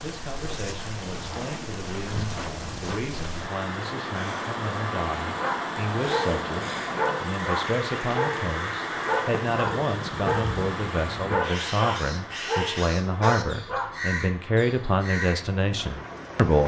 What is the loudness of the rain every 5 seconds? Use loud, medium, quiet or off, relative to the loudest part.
loud, loud, medium, medium.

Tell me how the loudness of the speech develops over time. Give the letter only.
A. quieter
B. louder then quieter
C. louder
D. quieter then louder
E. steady
C.